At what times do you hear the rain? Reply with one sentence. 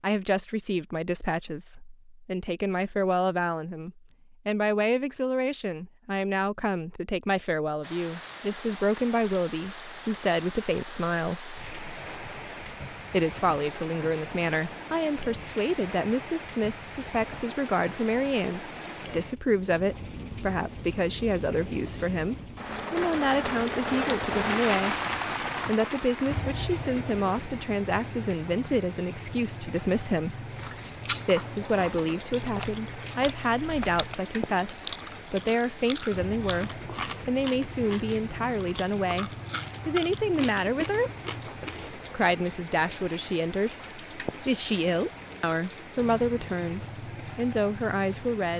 You can hear the rain from 7.8 to 48.5 s.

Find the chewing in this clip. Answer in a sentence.
The chewing can be heard from 30.5 to 41.9 s.